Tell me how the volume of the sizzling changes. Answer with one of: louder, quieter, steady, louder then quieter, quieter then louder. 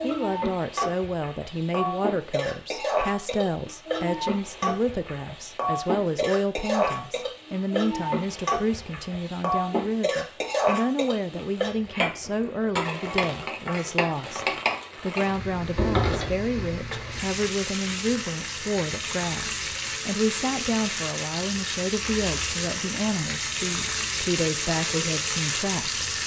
steady.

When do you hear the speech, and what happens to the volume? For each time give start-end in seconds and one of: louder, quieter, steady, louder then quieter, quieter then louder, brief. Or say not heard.
0.0-26.1 steady.